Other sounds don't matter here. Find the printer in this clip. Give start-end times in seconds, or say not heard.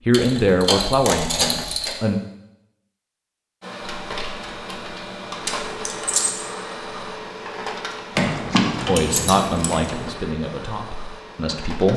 3.6-11.9.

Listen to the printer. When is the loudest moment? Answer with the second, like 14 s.
6 s.